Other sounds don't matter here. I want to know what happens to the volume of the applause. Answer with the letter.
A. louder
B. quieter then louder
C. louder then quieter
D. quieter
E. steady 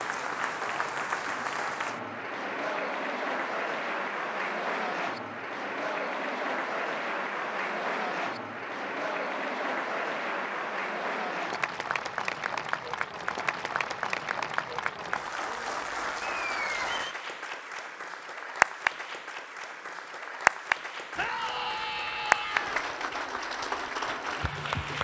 E.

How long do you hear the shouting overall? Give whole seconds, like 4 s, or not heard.
2 s.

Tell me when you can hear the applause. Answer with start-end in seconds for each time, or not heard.
0.0-24.9.